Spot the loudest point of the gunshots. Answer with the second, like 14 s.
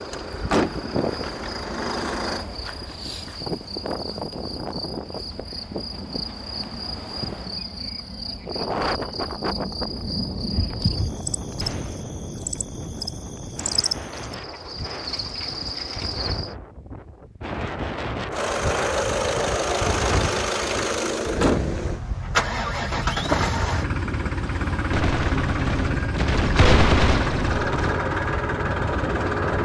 27 s.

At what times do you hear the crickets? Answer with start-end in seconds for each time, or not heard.
0.0-16.6.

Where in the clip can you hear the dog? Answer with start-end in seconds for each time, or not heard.
not heard.